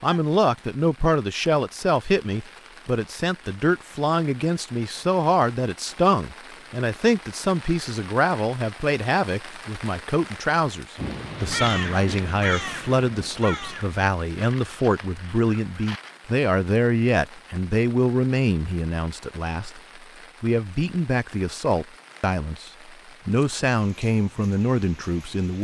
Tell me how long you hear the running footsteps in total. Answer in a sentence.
The running footsteps can't be heard in this clip.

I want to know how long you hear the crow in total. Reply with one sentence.
The crow can be heard for 5 seconds in total.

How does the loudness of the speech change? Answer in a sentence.
The volume of the speech stays about the same.